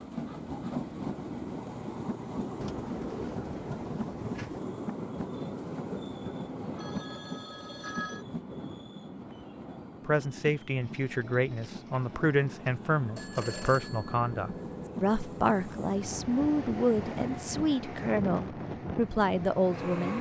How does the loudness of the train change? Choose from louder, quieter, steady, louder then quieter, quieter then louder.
quieter then louder.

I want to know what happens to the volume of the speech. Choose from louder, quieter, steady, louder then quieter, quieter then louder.
steady.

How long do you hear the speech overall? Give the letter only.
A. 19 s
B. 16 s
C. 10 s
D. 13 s
C.